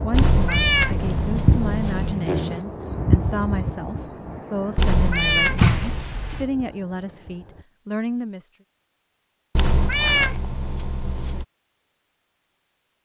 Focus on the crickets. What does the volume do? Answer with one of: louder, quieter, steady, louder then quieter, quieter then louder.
quieter.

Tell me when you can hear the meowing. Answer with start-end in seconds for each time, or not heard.
0.1-2.1, 4.8-6.2, 9.6-11.4.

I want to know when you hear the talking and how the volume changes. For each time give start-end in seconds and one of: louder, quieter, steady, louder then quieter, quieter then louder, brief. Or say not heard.
0.0-8.5 steady.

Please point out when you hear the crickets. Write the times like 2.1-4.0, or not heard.
0.0-7.7.